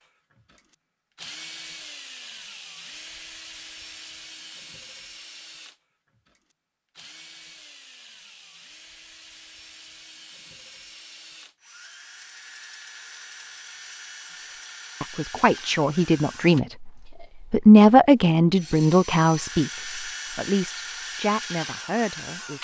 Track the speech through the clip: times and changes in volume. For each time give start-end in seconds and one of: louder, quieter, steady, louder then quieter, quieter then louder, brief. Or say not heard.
15.0-22.5 louder then quieter.